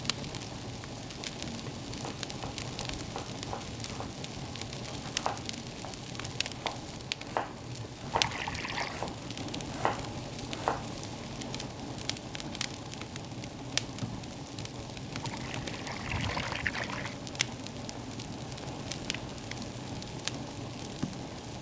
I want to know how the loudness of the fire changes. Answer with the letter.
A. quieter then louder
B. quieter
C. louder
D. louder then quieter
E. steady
E.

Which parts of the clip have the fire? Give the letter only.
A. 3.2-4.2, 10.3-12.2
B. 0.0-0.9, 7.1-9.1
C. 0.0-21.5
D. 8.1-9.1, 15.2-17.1
C.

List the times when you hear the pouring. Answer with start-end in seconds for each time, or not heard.
8.1-9.1, 15.2-17.1.